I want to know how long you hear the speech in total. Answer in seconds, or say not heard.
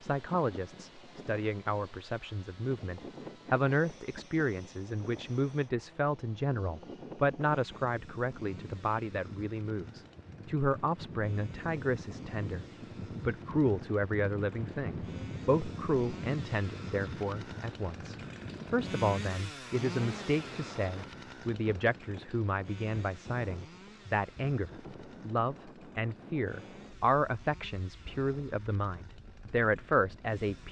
30 s.